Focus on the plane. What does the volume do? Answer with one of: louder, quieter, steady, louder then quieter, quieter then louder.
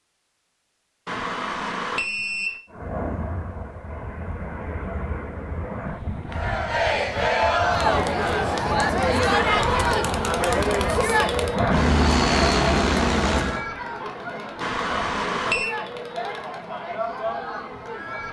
louder.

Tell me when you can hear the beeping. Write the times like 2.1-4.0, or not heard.
1.1-2.6, 9.2-9.8, 14.6-15.7.